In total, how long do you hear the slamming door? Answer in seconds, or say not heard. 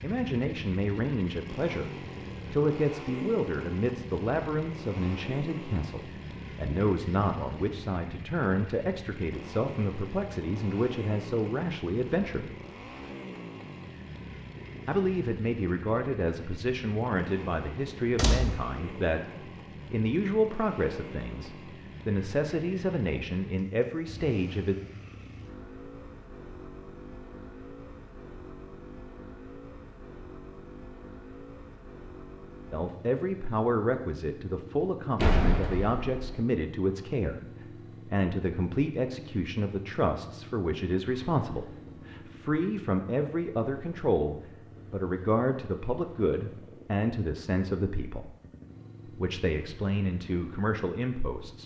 2 s.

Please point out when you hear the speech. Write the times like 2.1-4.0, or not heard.
0.0-12.6, 14.8-24.8, 32.7-48.3, 49.0-51.6.